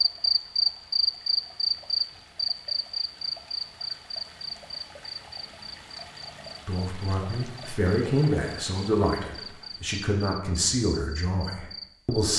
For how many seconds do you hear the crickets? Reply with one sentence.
You can hear the crickets for 12 seconds altogether.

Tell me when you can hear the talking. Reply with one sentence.
The talking can be heard from 6.7 to 12.3 s.